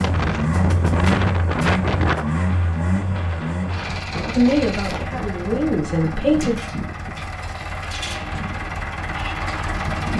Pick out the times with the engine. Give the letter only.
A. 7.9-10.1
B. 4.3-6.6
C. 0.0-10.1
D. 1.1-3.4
C.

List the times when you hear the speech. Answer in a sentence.
You can hear the speech from 4.3 to 6.6 s.